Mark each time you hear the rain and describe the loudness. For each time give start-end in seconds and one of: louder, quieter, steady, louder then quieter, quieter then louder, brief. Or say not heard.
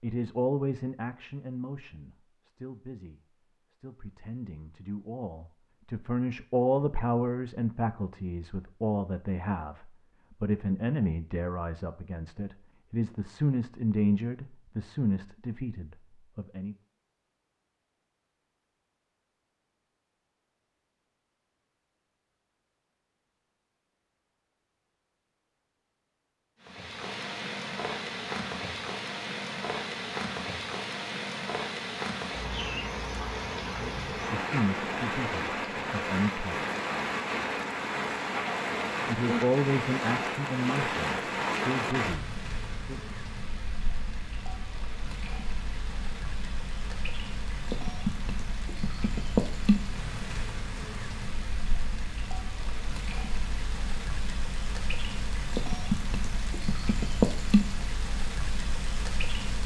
26.6-59.6 steady.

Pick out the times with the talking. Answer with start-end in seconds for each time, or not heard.
0.0-16.8, 33.6-36.6, 39.0-43.1.